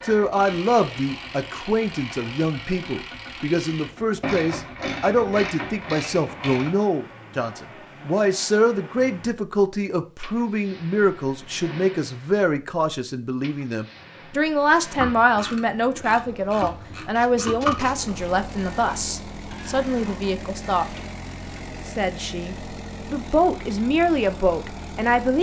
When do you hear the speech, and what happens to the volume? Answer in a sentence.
You can hear the speech from 0.1 to 25.3 s, at a steady volume.